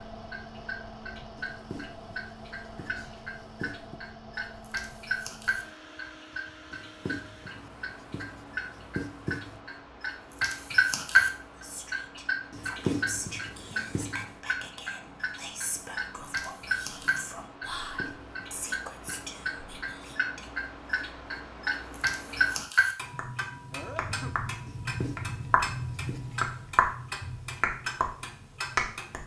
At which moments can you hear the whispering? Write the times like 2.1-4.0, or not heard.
11.4-20.6.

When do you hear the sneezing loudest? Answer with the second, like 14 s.
24 s.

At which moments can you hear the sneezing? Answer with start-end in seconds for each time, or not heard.
2.8-3.4, 23.7-24.4.